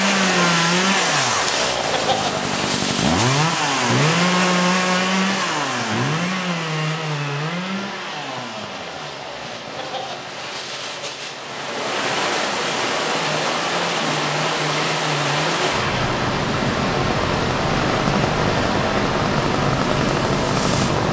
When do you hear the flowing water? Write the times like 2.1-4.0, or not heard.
0.0-21.0.